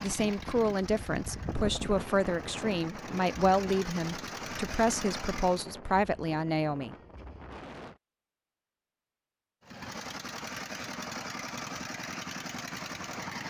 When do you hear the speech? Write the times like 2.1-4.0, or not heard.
0.0-7.0.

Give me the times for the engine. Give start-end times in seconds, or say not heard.
0.0-5.7, 9.6-13.4.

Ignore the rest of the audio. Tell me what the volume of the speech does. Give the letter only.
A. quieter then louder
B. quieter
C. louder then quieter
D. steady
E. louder
D.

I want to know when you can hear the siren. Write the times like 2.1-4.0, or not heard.
not heard.